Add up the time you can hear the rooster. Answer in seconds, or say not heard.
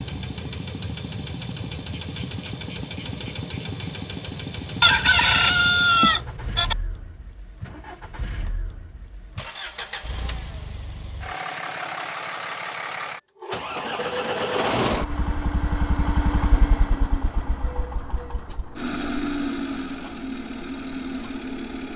2 s.